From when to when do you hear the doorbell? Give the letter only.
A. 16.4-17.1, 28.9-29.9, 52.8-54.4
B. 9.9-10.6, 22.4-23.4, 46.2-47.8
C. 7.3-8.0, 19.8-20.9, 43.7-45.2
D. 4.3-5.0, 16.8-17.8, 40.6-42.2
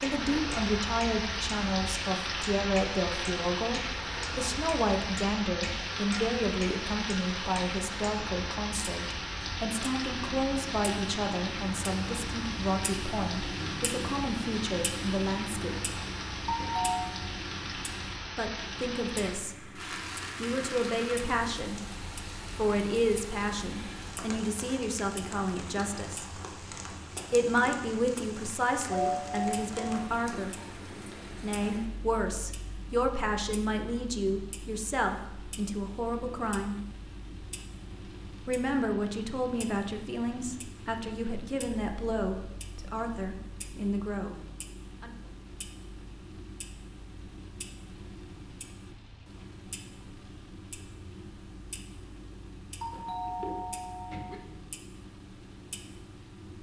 A.